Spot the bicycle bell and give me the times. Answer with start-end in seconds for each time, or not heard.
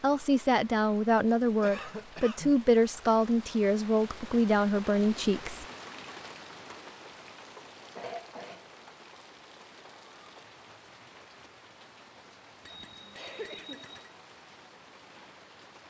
12.6-14.2.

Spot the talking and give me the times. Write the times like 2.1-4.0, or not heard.
0.0-5.7.